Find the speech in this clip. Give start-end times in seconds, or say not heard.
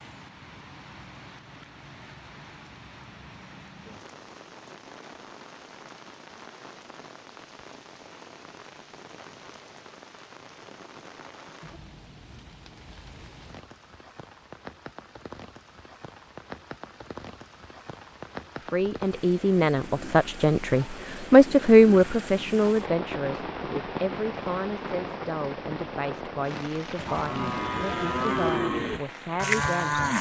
18.6-30.1.